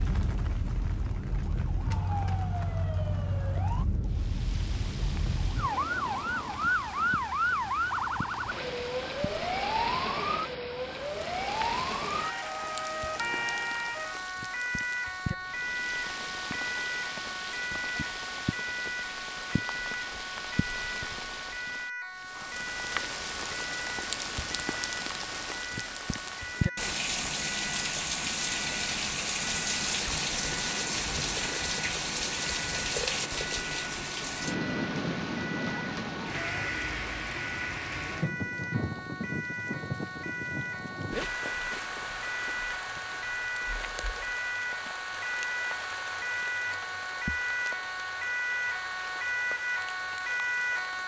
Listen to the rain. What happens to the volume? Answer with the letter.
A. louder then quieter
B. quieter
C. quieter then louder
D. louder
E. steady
A.